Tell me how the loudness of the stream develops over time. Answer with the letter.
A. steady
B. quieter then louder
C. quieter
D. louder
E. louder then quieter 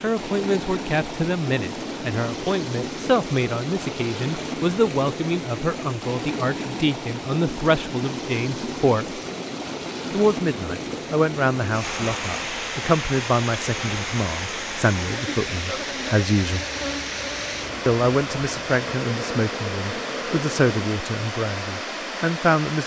A.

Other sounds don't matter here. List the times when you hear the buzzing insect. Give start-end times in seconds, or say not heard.
11.8-20.9.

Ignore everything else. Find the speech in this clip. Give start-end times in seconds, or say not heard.
0.0-9.2, 10.1-16.6, 17.9-22.8.